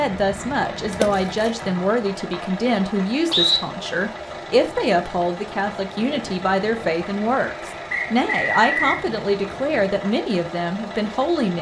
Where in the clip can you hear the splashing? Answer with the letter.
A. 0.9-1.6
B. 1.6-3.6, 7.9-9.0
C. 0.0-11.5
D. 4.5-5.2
A.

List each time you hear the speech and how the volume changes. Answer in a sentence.
The speech can be heard from 0.0 to 11.5 s, at a steady volume.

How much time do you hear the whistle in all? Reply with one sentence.
You can hear the whistle for 3 seconds altogether.